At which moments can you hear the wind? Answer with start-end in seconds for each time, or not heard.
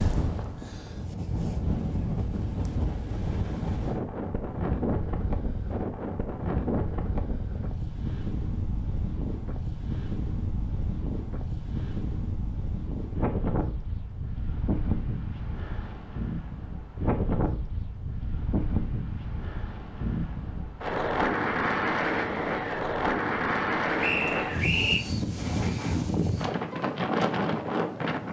0.0-28.2.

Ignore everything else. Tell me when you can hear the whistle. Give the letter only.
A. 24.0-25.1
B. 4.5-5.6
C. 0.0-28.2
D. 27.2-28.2
A.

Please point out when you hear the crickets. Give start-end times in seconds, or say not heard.
not heard.